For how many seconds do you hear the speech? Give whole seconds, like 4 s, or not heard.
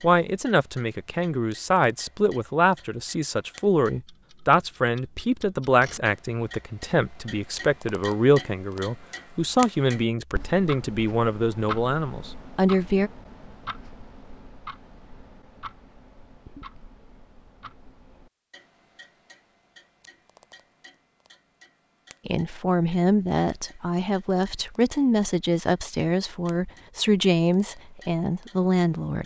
20 s.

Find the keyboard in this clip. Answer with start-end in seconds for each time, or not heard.
not heard.